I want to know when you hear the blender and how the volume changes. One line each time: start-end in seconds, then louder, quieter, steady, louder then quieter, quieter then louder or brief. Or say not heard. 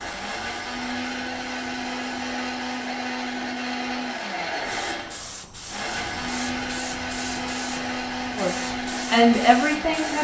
0.0-10.1 steady.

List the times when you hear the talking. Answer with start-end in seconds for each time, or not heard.
8.3-10.1.